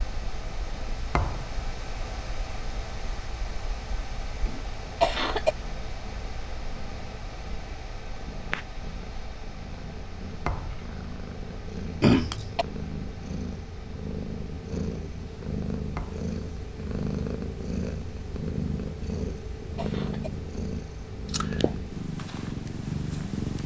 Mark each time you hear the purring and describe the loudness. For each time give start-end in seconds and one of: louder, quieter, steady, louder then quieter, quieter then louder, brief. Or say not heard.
0.0-23.6 louder.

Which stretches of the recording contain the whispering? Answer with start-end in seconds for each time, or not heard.
not heard.